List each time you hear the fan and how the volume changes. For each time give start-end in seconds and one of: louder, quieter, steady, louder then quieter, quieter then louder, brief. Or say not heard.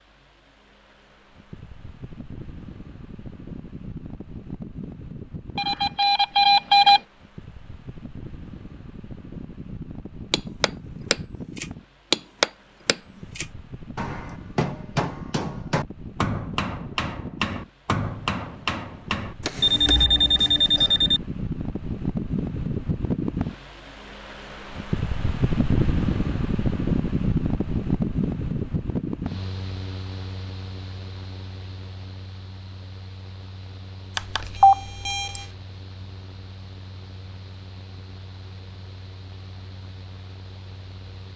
0.0-41.3 louder then quieter.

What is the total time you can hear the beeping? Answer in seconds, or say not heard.
4 s.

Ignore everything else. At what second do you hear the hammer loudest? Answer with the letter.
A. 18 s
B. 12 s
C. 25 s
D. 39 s
B.